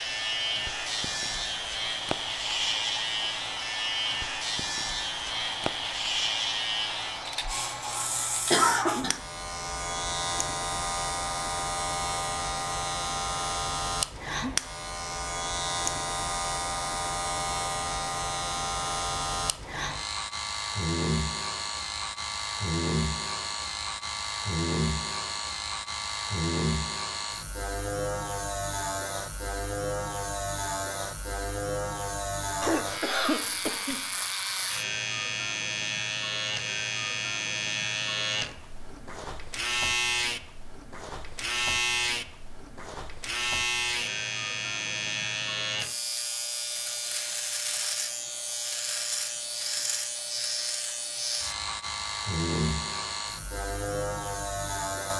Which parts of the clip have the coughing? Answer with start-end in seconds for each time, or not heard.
8.5-9.2, 32.6-34.0.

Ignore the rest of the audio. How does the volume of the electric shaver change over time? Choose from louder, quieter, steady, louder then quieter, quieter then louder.
steady.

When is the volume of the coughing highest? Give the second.
9 s.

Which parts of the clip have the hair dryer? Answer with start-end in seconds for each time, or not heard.
0.0-8.6.